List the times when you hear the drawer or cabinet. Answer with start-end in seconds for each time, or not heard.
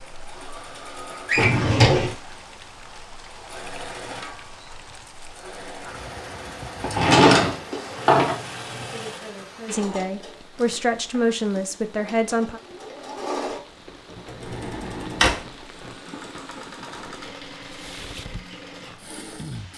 1.2-2.1, 6.8-8.4, 14.4-15.4.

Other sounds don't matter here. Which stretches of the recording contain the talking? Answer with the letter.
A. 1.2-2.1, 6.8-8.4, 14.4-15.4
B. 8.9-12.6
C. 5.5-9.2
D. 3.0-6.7
B.